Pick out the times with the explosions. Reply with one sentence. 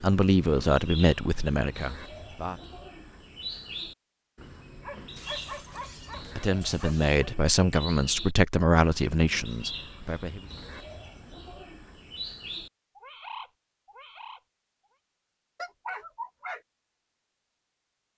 The explosions can't be heard in this clip.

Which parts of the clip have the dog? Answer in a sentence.
The dog can be heard from 4.8 to 7.2 s and from 15.6 to 16.6 s.